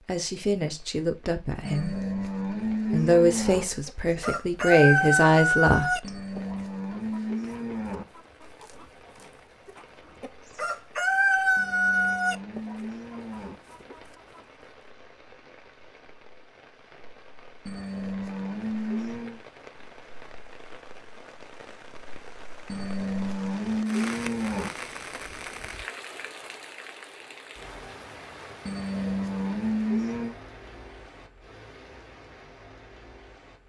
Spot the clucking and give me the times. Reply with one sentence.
The clucking can be heard from 3.9 to 8.8 s and from 9.7 to 14.4 s.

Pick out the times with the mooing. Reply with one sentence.
The mooing can be heard from 1.6 to 3.6 s, from 6.0 to 8.1 s, from 11.6 to 13.6 s, from 17.6 to 19.4 s, from 22.6 to 24.7 s and from 28.6 to 30.4 s.